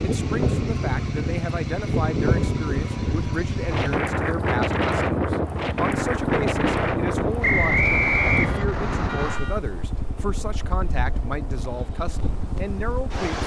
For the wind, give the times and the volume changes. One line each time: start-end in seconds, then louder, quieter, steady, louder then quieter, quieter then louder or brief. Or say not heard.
0.0-13.4 quieter.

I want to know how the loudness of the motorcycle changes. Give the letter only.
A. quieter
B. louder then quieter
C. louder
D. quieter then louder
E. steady
A.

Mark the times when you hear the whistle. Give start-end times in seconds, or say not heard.
7.4-8.7.